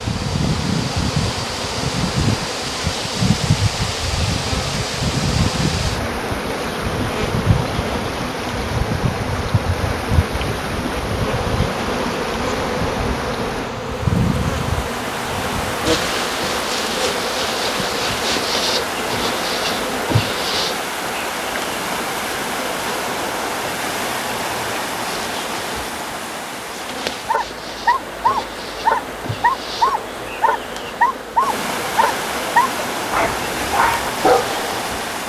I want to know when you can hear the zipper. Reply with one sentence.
The zipper can't be heard in this clip.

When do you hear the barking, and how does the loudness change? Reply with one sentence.
You can hear the barking from 27.2 to 34.8 s, at a steady volume.